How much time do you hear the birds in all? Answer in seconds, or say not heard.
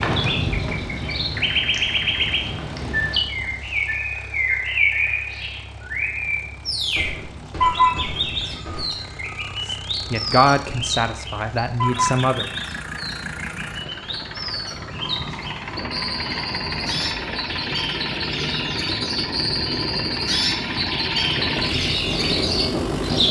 23 s.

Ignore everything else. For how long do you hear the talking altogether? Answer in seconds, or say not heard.
3 s.